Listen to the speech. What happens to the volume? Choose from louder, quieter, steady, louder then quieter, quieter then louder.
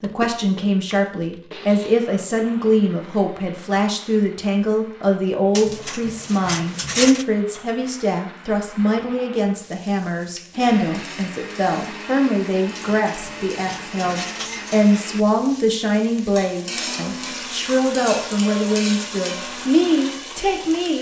steady.